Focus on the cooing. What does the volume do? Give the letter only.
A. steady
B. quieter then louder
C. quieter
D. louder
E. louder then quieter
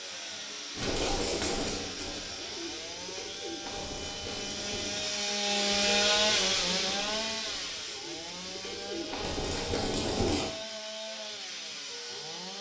B.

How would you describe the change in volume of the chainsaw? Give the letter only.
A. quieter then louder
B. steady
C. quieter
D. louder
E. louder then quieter
E.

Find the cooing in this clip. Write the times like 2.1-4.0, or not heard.
0.8-10.5.